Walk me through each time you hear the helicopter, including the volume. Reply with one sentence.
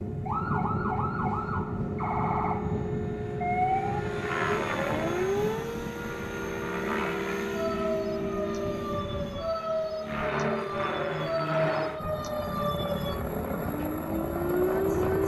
You can hear the helicopter from 0.0 to 15.2 s, at a steady volume.